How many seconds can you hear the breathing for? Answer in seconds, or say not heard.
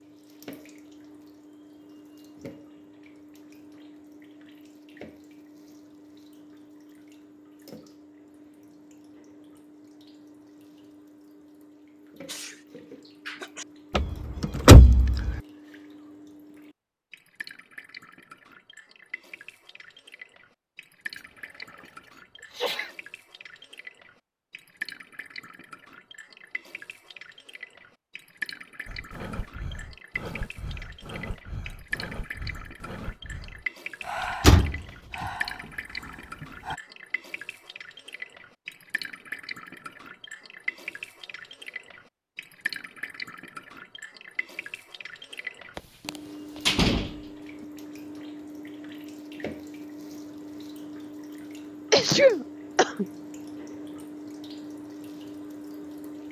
8 s.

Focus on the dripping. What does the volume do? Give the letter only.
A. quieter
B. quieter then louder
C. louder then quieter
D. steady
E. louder
E.